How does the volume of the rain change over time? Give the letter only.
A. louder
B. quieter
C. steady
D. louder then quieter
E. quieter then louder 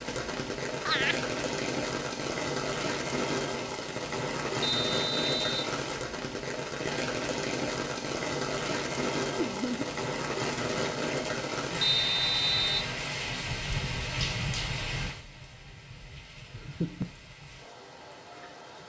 B.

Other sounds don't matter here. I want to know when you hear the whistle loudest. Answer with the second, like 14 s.
12 s.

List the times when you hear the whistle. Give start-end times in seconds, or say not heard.
4.6-5.7, 11.8-12.8.